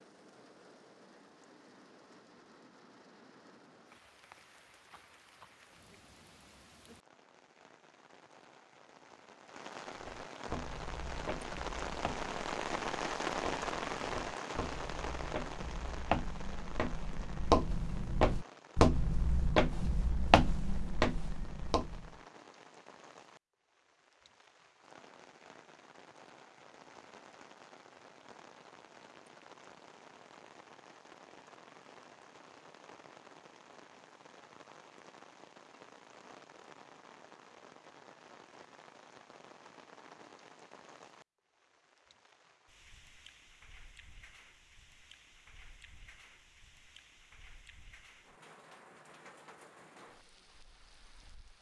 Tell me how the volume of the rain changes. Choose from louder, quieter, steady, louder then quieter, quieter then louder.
louder then quieter.